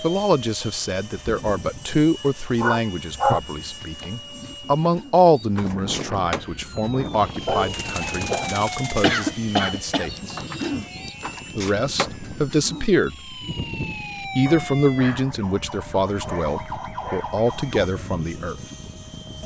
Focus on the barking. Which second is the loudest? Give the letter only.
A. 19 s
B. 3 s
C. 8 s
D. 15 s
B.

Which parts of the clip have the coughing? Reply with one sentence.
You can hear the coughing from 8.9 to 10.1 s.